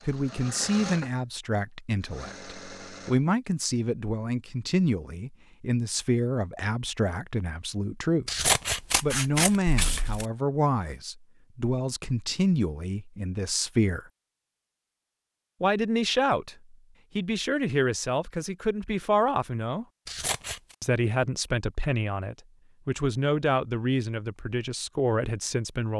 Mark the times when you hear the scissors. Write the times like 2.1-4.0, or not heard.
8.2-10.2, 20.1-20.8.